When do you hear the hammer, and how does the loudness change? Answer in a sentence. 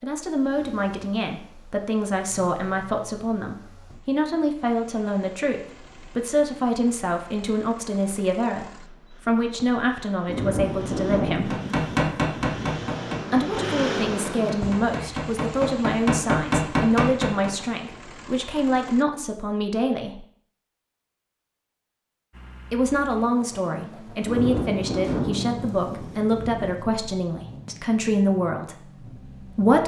The hammer can be heard from 11.5 to 17.5 s, getting quieter then louder.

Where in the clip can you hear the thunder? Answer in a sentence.
You can hear the thunder from 10.2 to 12.8 s and from 24.2 to 26.9 s.